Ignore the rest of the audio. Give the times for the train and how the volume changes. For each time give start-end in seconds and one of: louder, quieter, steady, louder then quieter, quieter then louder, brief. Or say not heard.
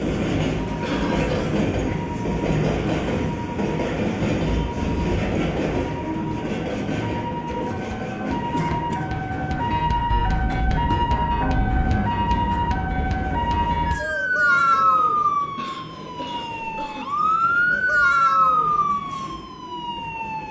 0.0-20.4 quieter.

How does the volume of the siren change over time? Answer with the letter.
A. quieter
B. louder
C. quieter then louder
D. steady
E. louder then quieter
B.